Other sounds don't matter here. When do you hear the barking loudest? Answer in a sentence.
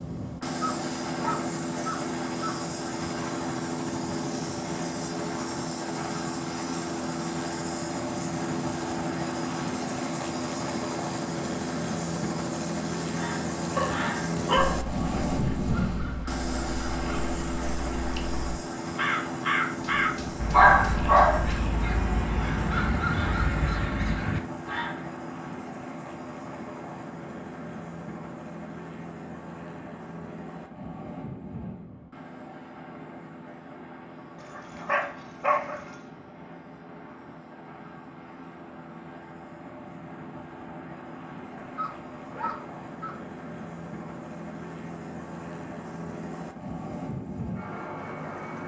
The loudest moment of the barking is at 21 seconds.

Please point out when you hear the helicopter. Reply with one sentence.
The helicopter can be heard from 0.0 to 48.6 s.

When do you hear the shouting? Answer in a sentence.
The shouting can't be heard in this clip.